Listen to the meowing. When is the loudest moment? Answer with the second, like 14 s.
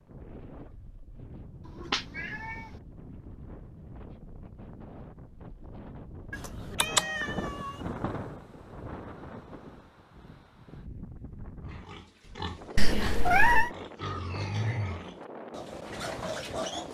13 s.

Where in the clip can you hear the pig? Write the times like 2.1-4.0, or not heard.
11.7-16.9.